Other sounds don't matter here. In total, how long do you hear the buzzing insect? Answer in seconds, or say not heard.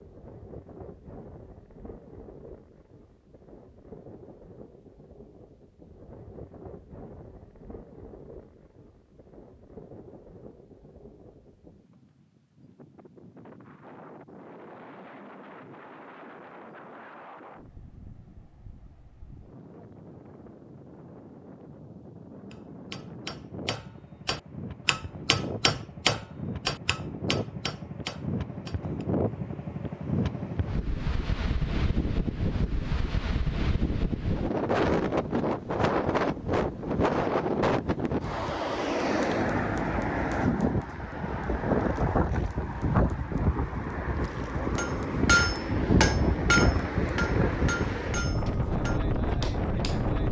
not heard.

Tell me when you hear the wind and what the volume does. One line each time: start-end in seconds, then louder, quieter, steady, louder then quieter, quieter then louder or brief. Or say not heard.
0.0-50.2 louder.